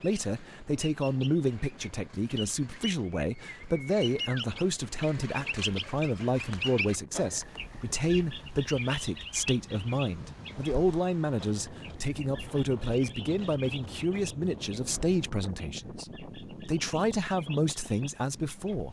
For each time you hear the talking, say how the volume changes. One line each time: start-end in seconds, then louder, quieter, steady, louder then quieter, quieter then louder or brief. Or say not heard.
0.0-18.8 steady.